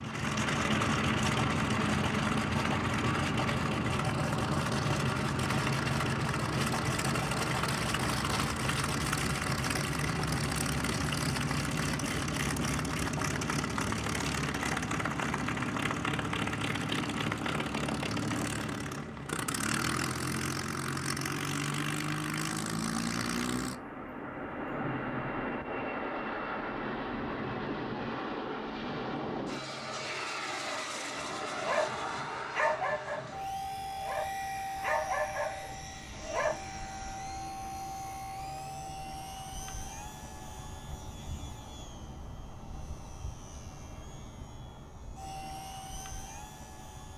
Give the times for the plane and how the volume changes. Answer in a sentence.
The plane can be heard from 0.0 to 47.1 s, getting quieter.